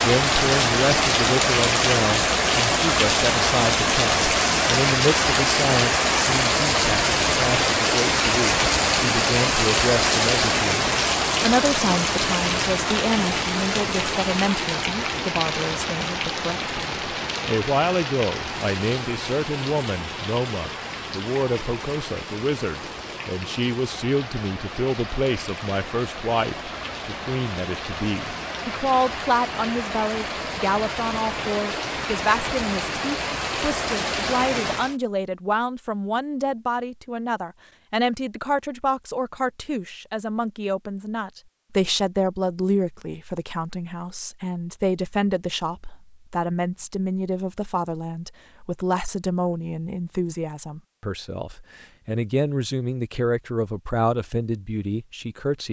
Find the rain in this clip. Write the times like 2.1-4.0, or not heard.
0.0-35.0.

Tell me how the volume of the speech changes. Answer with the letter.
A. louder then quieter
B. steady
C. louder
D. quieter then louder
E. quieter
B.